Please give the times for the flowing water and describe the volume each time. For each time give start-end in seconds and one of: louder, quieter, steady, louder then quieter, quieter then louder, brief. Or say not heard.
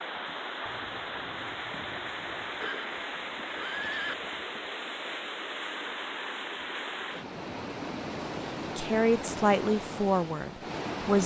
0.0-11.2 steady.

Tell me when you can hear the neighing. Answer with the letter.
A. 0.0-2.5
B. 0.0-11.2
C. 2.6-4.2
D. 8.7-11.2
C.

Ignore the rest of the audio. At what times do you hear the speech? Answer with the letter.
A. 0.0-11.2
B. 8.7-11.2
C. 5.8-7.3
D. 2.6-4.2
B.